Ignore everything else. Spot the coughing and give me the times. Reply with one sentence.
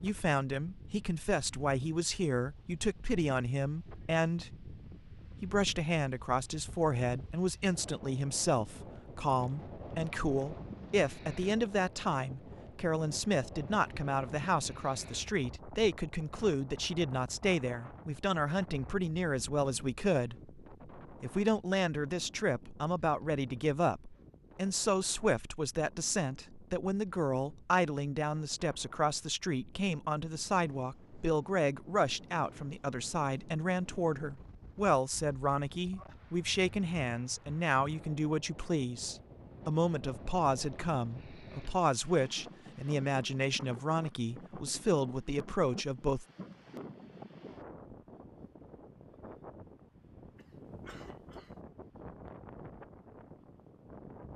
The coughing can be heard from 50.4 to 51.6 s.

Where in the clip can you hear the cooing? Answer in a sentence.
The cooing can't be heard in this clip.